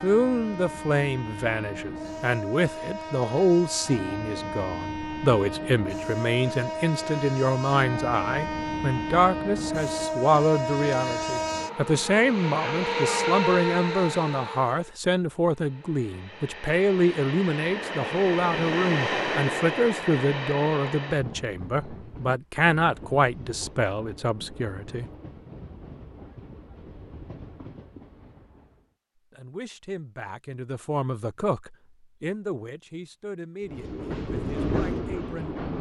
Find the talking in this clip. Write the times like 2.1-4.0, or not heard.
0.0-25.1, 29.3-35.5.